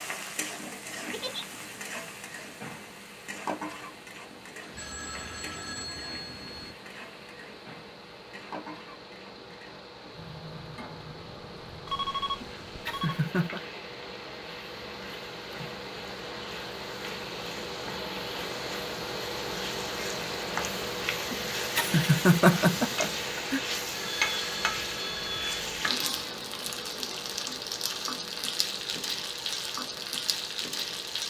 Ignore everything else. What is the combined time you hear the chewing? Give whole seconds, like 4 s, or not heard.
not heard.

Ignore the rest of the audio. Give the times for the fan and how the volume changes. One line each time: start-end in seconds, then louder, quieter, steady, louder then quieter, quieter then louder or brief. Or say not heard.
0.1-31.2 louder then quieter.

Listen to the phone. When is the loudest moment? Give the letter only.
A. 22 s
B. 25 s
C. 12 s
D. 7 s
C.